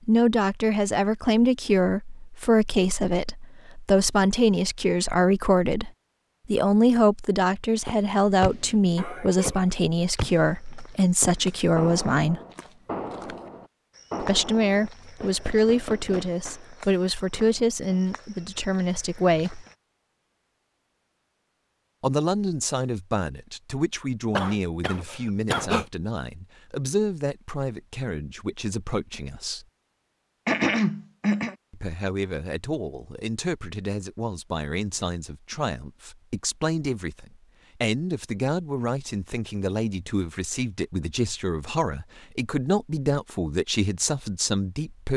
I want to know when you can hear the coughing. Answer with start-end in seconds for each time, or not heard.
8.9-9.7, 24.4-25.9, 30.4-31.6.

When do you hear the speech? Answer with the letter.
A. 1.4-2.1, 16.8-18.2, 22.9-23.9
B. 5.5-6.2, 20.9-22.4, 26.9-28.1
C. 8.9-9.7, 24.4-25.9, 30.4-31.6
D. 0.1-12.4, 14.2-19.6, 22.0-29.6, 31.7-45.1
D.